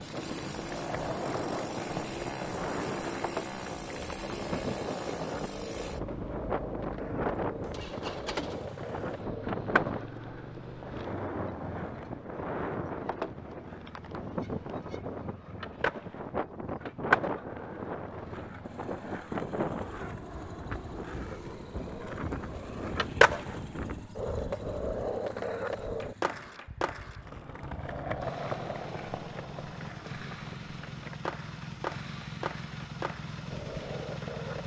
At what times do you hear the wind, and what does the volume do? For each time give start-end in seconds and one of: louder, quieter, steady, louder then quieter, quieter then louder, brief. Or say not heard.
0.0-24.1 steady.